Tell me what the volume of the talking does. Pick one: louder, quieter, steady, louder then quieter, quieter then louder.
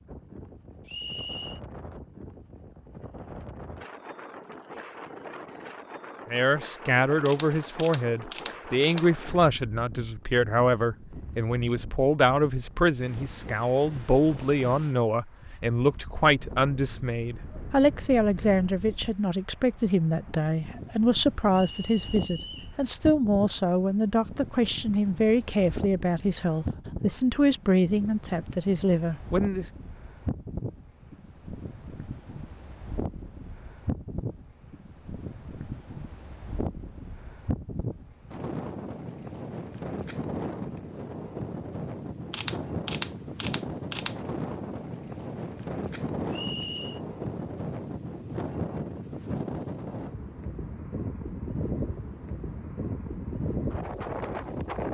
steady.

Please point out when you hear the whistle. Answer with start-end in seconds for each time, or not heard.
0.8-1.6, 21.7-22.8, 46.3-47.0.